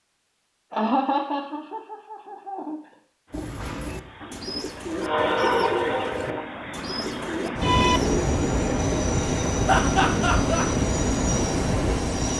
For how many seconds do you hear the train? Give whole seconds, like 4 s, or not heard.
9 s.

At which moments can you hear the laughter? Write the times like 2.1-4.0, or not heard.
0.7-2.8, 9.7-10.7.